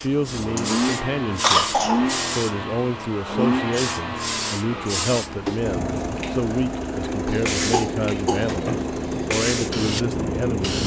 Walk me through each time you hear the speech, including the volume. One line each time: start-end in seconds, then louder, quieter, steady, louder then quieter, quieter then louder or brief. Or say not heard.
0.0-10.8 steady.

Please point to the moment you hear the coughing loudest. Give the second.
2 s.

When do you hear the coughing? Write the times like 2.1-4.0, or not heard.
1.4-2.0, 7.2-9.3.